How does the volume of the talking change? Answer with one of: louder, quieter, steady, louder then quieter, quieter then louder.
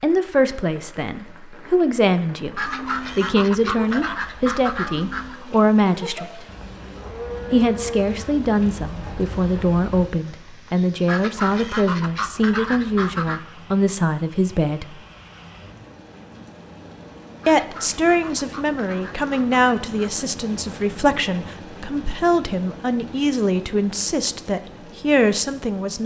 steady.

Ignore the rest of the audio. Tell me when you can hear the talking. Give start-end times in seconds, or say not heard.
0.0-6.5, 7.5-15.0, 17.4-26.0.